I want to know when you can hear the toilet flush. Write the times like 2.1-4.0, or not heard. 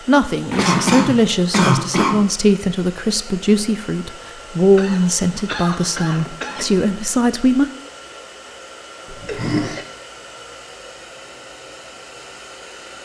0.5-1.1, 6.0-6.8, 9.1-9.8.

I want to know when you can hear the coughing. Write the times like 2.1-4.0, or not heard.
0.6-2.2, 4.8-6.7, 8.9-9.8.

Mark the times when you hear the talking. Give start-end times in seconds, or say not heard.
0.1-7.7.